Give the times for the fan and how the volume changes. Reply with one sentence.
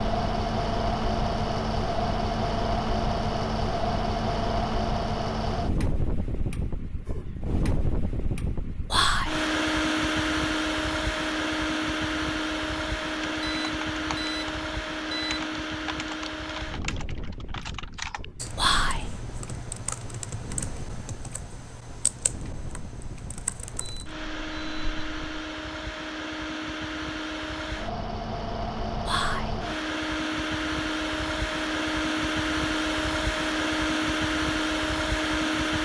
You can hear the fan from 0.0 to 35.7 s, getting quieter then louder.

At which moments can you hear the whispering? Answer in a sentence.
The whispering can be heard from 8.9 to 9.4 s, from 18.6 to 19.1 s and from 29.1 to 29.6 s.